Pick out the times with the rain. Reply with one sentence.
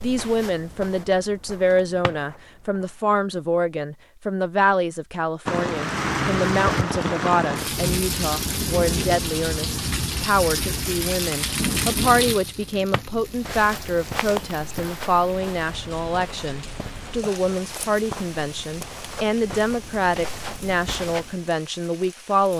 The rain can be heard from 5.5 to 22.5 s.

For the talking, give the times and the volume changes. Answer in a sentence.
You can hear the talking from 0.0 to 22.5 s, at a steady volume.